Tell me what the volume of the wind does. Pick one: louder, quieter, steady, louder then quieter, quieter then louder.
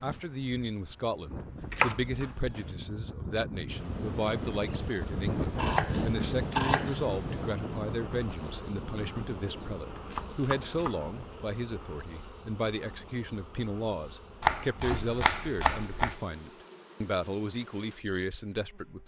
louder then quieter.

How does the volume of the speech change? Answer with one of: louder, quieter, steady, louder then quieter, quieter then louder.
steady.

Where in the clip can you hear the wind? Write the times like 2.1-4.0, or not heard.
0.0-11.5.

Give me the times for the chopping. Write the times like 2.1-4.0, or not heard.
1.6-2.8, 5.5-7.2, 10.1-11.1, 14.4-16.2.